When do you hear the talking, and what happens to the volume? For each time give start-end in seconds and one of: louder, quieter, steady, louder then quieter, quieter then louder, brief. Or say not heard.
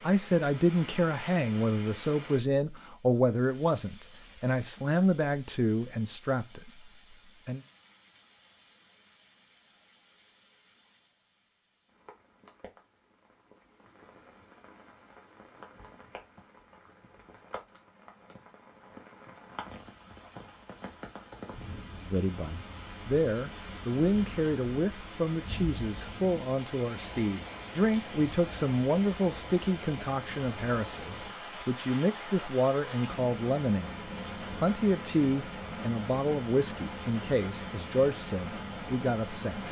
0.0-7.6 quieter
22.0-39.6 steady.